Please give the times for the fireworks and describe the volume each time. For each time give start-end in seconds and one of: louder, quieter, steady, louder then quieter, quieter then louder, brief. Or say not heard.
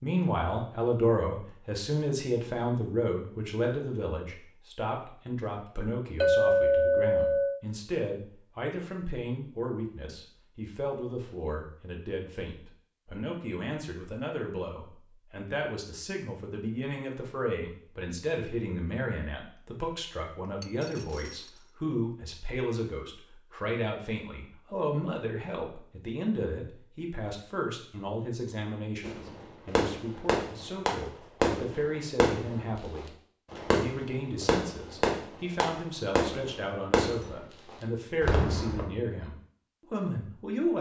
29.0-38.9 steady.